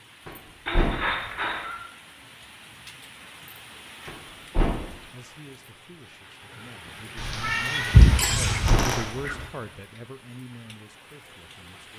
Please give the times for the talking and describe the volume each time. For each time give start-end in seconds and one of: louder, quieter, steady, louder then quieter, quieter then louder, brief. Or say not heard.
5.1-11.9 louder then quieter.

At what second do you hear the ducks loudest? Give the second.
8 s.